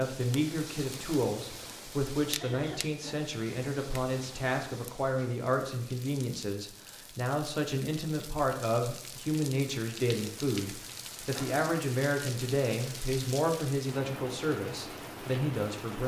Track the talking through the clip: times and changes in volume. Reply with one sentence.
The talking can be heard from 0.0 to 16.0 s, at a steady volume.